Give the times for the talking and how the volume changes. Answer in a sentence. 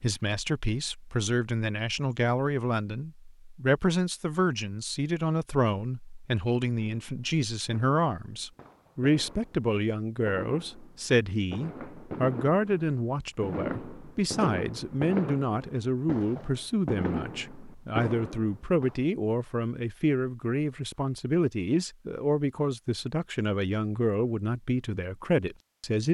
The talking can be heard from 0.0 to 26.0 s, at a steady volume.